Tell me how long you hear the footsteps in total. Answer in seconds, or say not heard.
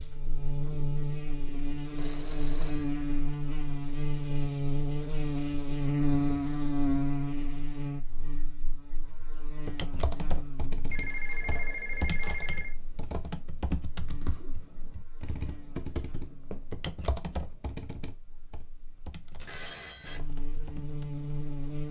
not heard.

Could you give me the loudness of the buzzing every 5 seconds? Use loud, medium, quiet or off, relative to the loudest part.
loud, loud, quiet, quiet, medium.